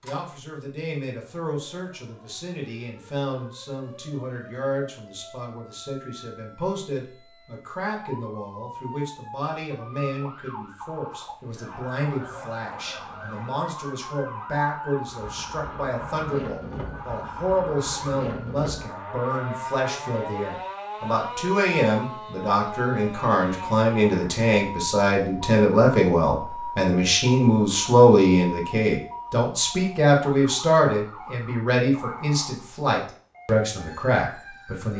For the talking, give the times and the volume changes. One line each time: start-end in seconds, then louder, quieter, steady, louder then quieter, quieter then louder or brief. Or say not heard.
0.0-34.9 louder.